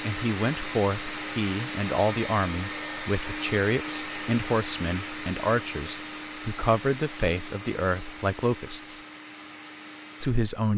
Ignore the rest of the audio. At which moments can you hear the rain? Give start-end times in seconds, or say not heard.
not heard.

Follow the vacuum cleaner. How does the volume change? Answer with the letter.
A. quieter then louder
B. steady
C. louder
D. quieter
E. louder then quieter
D.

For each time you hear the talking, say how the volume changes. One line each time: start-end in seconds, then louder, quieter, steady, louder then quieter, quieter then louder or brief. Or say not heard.
0.0-9.1 steady
10.2-10.7 brief.